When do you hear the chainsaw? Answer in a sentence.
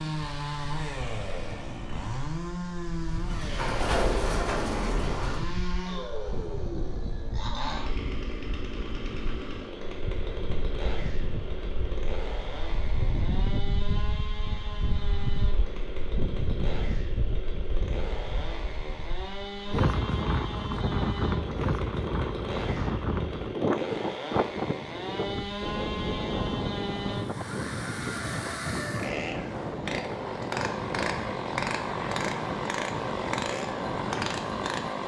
The chainsaw can be heard from 0.0 to 35.0 s.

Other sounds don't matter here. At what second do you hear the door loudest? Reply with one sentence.
The volume of the door peaks at 4 seconds.